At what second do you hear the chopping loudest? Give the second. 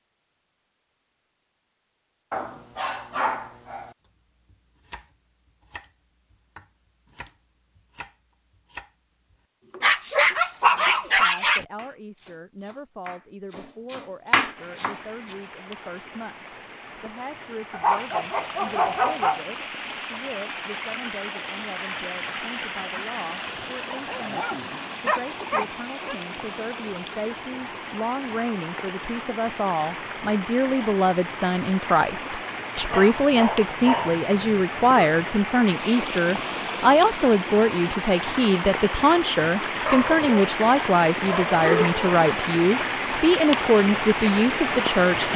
14 s.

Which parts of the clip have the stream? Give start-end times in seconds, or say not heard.
14.6-45.3.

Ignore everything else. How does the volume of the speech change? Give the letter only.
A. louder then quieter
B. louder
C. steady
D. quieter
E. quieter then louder
B.